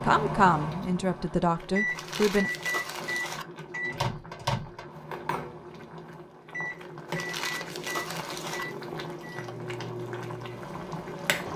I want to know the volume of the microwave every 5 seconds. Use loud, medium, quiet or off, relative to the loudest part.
loud, medium, medium.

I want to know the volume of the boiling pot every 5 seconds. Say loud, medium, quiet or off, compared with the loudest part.
medium, loud, loud.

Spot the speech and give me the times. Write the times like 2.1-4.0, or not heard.
0.0-2.5.